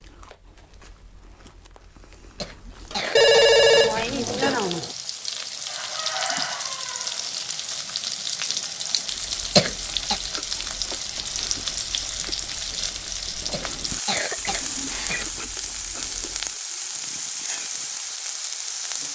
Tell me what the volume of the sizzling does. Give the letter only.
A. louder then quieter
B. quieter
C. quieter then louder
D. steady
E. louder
D.